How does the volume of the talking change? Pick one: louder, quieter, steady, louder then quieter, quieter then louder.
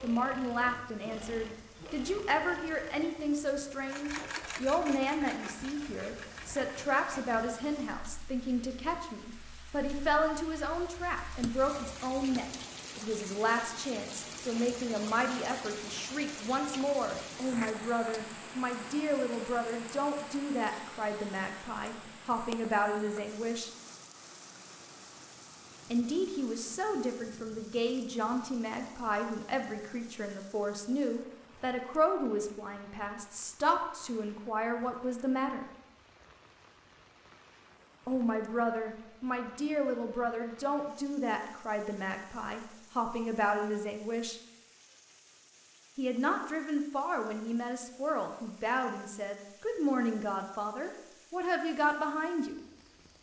steady.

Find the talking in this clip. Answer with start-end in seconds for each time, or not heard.
0.0-23.7, 25.9-35.6, 38.0-44.4, 46.0-52.5.